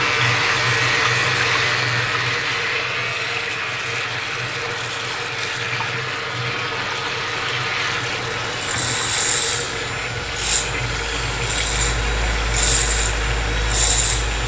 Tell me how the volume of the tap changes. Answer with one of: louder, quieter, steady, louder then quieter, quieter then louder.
steady.